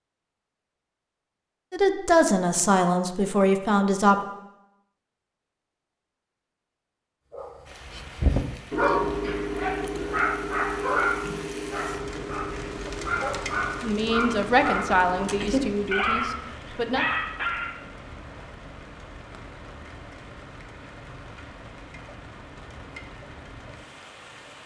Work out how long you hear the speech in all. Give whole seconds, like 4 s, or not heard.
6 s.